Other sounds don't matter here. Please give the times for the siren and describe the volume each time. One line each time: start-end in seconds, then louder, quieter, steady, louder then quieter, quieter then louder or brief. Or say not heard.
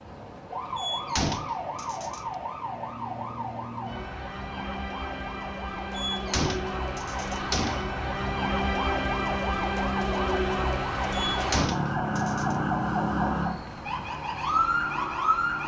0.0-15.6 louder.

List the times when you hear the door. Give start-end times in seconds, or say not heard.
0.8-2.2, 5.9-7.9, 11.1-12.6.